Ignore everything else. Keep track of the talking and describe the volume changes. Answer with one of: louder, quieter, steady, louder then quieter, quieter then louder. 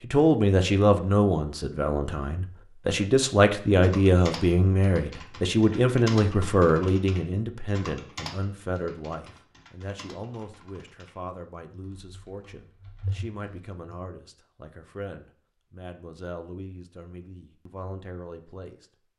quieter.